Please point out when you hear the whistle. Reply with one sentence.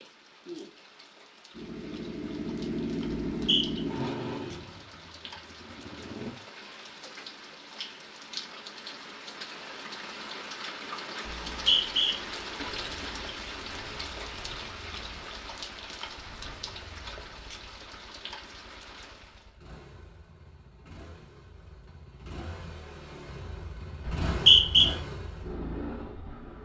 You can hear the whistle from 3.3 to 3.8 s, from 11.2 to 12.2 s and from 24.1 to 24.9 s.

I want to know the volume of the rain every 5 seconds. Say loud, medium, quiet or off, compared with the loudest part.
medium, medium, loud, medium, off, off.